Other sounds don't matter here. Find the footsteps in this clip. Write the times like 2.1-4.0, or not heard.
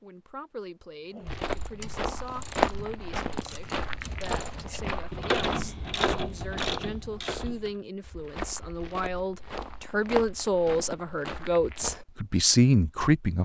1.2-12.1.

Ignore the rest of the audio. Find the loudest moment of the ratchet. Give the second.
5 s.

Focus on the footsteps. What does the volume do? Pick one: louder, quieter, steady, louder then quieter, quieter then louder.
quieter.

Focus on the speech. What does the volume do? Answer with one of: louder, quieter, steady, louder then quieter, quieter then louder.
louder.